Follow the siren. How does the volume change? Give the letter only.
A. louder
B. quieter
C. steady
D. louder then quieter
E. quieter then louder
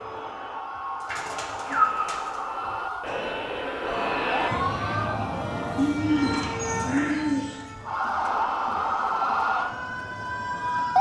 A.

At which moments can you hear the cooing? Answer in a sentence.
You can hear the cooing from 1.0 to 3.0 s and from 5.8 to 7.7 s.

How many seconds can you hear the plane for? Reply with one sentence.
The plane can be heard for 11 seconds in total.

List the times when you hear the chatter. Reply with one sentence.
The chatter can be heard from 3.0 to 10.8 s.